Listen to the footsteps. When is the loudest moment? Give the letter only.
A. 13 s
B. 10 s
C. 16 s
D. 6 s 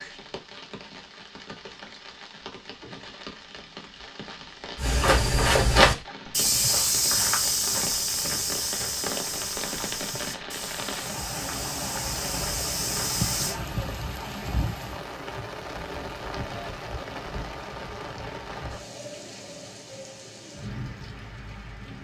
D.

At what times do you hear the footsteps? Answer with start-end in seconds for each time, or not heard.
4.8-13.6.